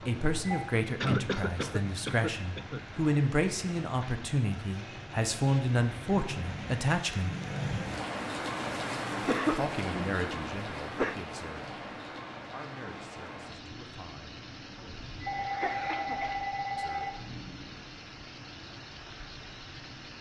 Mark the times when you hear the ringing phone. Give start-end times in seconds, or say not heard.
0.0-0.7, 14.8-17.2.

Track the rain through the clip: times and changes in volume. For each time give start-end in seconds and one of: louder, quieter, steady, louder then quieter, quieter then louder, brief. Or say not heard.
0.0-20.1 louder then quieter.